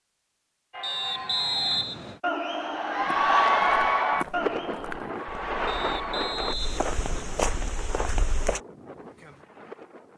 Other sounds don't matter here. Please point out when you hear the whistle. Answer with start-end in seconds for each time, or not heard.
0.8-2.2, 5.7-7.7.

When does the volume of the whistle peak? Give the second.
2 s.